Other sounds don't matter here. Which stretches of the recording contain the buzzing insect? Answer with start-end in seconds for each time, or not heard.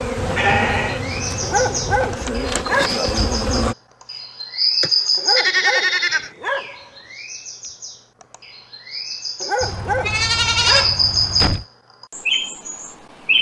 0.0-3.8.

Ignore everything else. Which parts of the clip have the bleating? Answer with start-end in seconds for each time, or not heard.
0.1-2.2, 4.8-6.3, 9.6-11.7.